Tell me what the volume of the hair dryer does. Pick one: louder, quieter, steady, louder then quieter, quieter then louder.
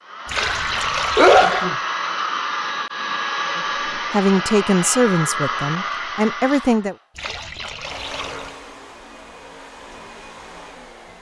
quieter.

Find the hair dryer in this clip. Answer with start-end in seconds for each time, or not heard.
0.0-11.1.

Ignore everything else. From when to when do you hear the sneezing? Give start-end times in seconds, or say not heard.
0.3-1.8.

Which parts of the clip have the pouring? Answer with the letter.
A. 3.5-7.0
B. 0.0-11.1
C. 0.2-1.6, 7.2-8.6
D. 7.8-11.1
C.